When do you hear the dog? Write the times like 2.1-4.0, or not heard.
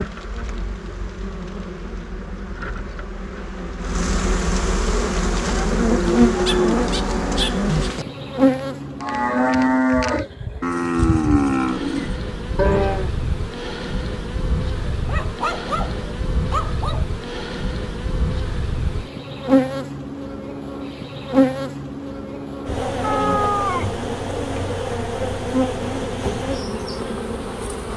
6.5-7.9, 14.9-17.1.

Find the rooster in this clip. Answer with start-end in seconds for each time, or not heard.
23.0-23.9.